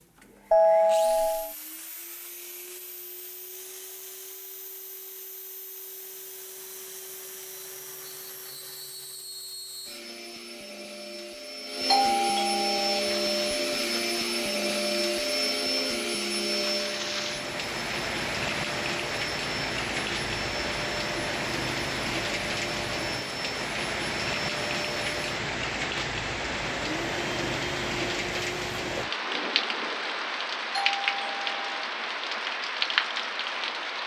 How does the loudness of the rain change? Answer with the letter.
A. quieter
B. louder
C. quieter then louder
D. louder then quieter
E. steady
B.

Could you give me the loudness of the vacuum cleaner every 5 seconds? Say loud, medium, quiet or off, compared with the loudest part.
quiet, quiet, loud, loud, medium, medium, off.